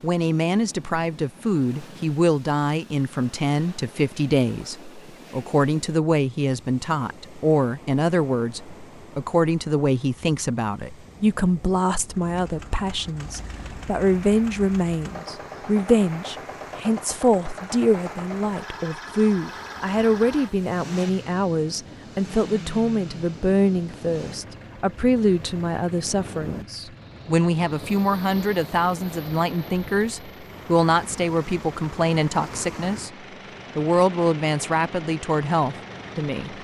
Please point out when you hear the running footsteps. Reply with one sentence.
You can't hear the running footsteps here.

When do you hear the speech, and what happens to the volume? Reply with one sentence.
The speech can be heard from 0.0 to 33.1 s, at a steady volume; and briefly from 33.8 to 36.5 s.